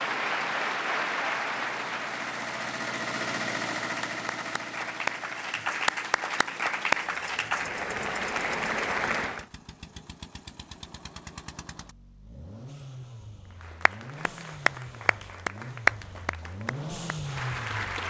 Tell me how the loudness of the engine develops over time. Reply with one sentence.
The volume of the engine goes down, then up.